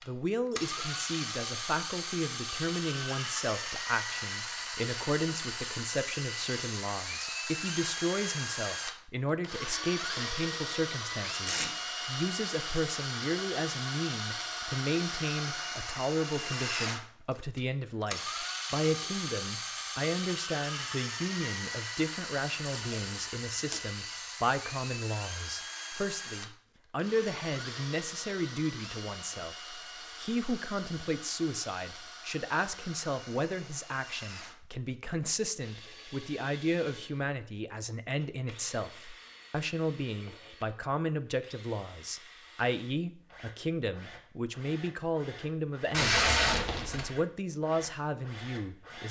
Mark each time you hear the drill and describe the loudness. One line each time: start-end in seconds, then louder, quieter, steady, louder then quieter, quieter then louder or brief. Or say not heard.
0.0-49.0 quieter.